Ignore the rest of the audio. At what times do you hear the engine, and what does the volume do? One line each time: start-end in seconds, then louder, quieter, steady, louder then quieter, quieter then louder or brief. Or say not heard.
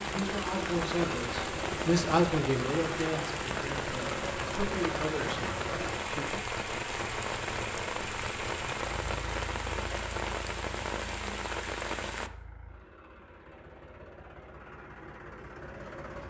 0.0-16.2 quieter.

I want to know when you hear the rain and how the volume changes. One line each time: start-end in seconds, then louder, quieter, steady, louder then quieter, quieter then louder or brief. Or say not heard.
0.0-12.3 steady.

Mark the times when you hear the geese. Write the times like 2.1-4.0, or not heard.
not heard.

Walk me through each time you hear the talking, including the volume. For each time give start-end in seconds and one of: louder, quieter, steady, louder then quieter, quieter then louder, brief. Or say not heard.
0.0-6.4 louder then quieter.